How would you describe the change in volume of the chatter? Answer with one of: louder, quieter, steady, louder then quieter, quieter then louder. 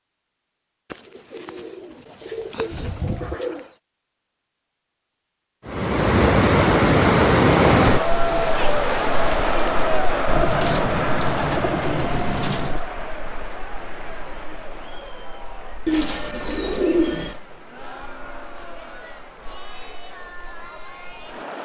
quieter.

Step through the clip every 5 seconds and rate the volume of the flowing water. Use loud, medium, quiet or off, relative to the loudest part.
off, loud, quiet, quiet, quiet.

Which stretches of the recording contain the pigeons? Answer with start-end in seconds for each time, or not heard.
0.9-3.7, 10.2-12.8, 15.8-17.4.